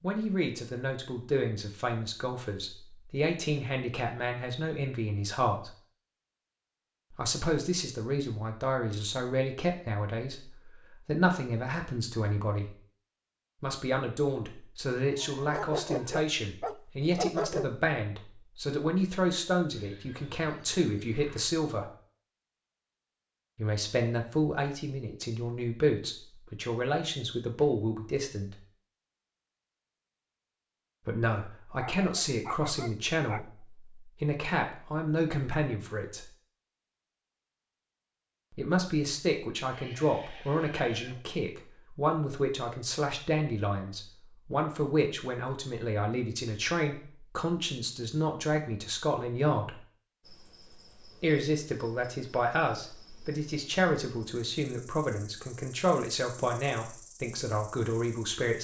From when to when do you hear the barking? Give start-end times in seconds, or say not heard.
15.5-17.8, 31.8-33.5.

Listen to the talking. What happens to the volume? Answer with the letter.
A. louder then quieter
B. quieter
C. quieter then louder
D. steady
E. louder
D.